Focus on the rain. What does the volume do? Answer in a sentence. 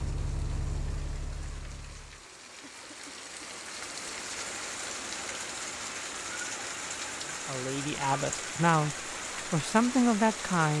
The loudness of the rain goes up.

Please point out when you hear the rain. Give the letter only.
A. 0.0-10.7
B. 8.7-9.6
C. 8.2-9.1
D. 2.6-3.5
A.